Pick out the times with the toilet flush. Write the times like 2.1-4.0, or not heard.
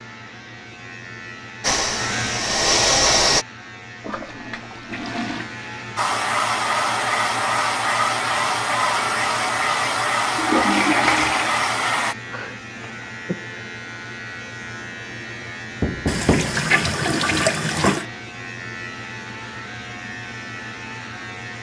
4.0-5.5, 10.3-11.7, 16.1-18.1.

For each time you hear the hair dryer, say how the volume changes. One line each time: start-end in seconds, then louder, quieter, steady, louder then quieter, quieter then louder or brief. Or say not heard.
1.6-3.5 brief
6.0-12.2 steady.